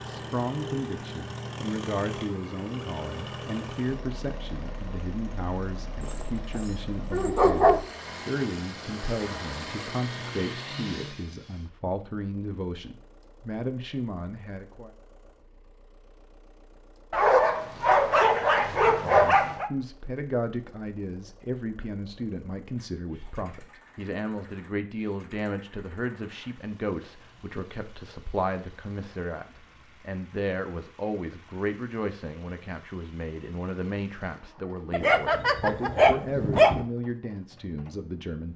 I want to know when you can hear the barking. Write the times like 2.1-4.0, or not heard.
6.0-7.8, 17.1-19.7, 34.9-36.9.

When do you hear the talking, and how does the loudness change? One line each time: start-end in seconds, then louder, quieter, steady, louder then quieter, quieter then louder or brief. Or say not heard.
0.1-14.9 steady
18.9-38.5 steady.